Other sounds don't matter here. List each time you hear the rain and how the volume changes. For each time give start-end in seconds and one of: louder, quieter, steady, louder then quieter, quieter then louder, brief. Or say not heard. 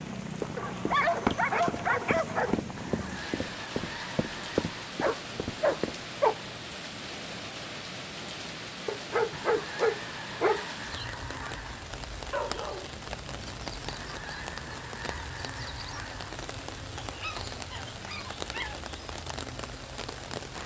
0.0-20.6 steady.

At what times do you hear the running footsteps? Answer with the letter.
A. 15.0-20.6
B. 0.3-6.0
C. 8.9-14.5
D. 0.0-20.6
B.